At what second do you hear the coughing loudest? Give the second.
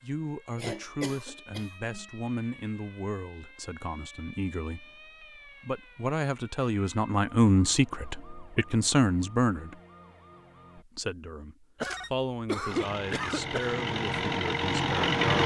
13 s.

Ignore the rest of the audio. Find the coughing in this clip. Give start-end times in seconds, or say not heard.
0.6-2.0, 11.8-13.8.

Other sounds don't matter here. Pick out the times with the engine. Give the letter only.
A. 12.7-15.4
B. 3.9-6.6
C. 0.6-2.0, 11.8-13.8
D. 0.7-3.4
A.